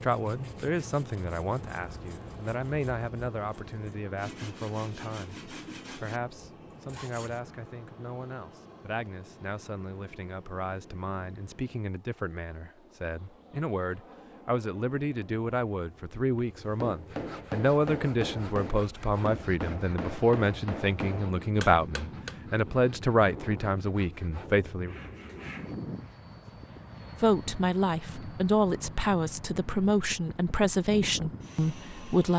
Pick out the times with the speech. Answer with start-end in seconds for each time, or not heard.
0.0-24.9, 27.2-32.3.